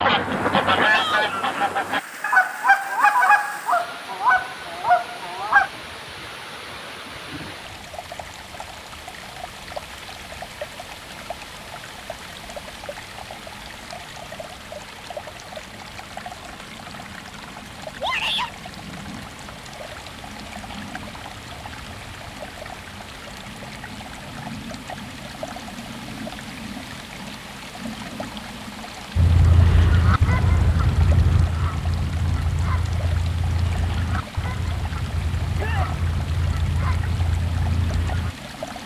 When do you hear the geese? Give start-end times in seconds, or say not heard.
0.0-5.7, 29.1-38.4.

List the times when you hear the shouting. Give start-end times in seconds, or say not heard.
0.8-1.3, 18.0-18.7, 35.5-36.0.